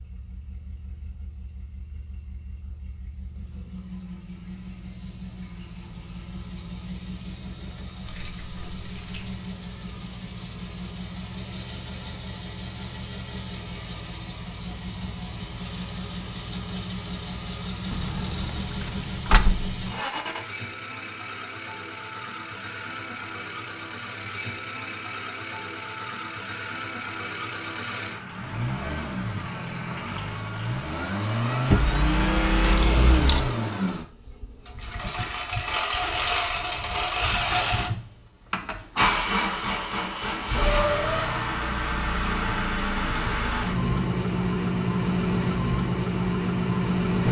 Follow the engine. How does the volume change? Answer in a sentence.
The volume of the engine goes up.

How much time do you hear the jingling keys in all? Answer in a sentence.
You can hear the jingling keys for 5 seconds altogether.